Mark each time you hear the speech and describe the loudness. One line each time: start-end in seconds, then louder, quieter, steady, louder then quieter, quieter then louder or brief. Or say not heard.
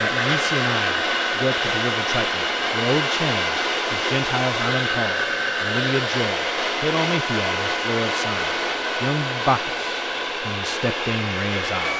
0.0-11.9 steady.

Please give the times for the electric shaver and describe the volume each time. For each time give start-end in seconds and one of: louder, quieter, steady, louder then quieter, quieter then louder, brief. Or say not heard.
not heard.